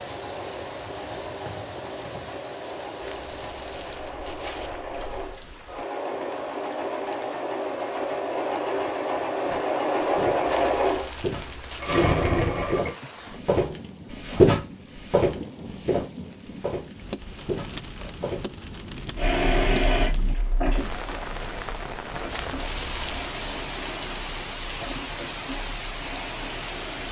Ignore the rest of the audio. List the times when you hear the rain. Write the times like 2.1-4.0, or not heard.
0.0-27.0.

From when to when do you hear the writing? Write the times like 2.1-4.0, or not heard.
not heard.